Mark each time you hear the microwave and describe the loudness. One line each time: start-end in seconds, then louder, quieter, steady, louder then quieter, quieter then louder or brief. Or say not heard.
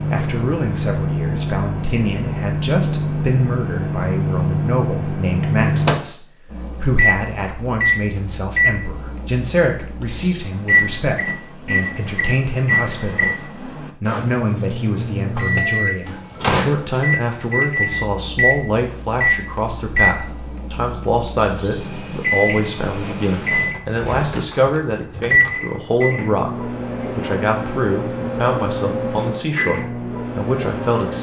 0.0-31.1 steady.